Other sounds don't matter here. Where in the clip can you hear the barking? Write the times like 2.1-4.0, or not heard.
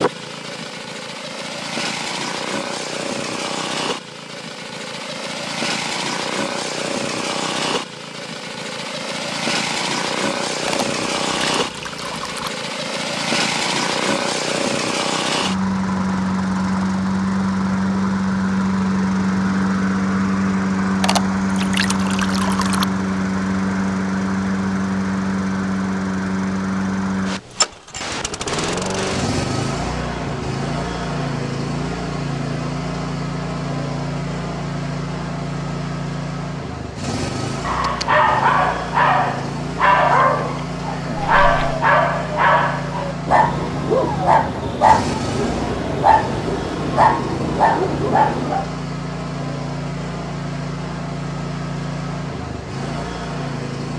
37.6-48.7.